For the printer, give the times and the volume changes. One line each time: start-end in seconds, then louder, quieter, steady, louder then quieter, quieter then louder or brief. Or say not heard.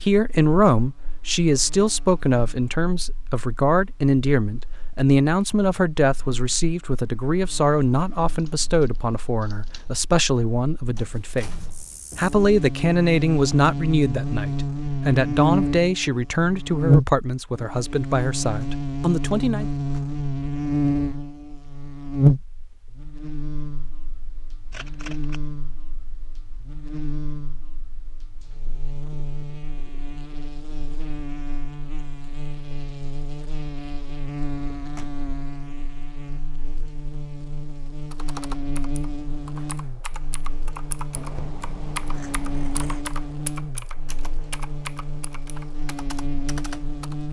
not heard.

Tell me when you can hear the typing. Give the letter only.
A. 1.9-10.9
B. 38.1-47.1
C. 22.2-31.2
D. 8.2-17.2
B.